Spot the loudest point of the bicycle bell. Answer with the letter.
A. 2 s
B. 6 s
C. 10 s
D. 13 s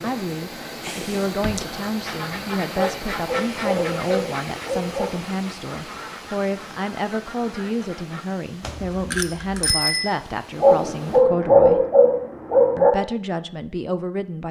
C.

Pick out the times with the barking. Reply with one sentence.
The barking can be heard from 2.8 to 5.2 s and from 10.6 to 12.9 s.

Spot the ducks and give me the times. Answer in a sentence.
The ducks can be heard from 2.0 to 8.2 s.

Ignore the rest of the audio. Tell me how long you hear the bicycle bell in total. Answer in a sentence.
You can hear the bicycle bell for 3 seconds altogether.